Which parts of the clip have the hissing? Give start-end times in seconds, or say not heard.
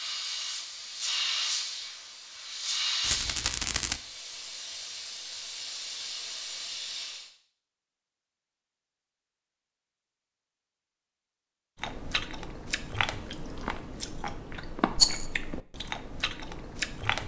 0.0-7.3.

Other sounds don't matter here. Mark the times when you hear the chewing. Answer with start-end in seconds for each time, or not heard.
11.8-17.2.